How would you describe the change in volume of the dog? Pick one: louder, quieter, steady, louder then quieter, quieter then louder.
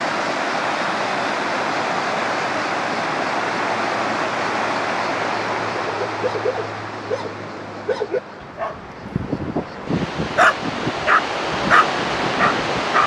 louder.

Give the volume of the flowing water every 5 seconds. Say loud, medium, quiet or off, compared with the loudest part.
loud, medium, loud.